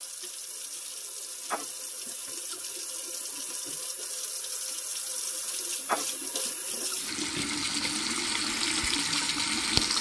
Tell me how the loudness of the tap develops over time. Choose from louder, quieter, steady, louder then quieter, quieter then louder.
louder.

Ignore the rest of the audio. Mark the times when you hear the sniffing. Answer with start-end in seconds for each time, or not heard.
1.5-2.5, 5.8-7.0.